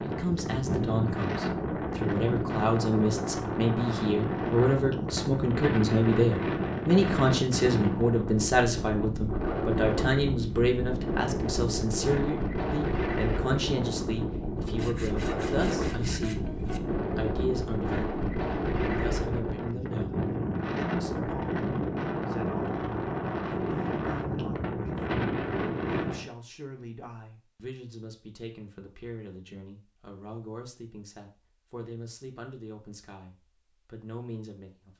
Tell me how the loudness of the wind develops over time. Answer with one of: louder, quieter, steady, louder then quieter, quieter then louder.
steady.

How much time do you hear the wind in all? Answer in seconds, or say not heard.
26 s.